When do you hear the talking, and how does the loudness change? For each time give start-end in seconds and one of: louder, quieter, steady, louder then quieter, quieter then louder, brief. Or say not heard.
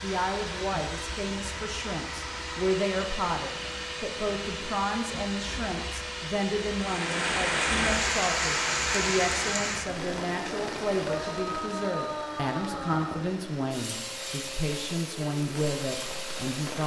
0.0-16.8 steady.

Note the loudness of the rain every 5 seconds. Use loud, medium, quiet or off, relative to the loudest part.
off, loud, quiet, quiet.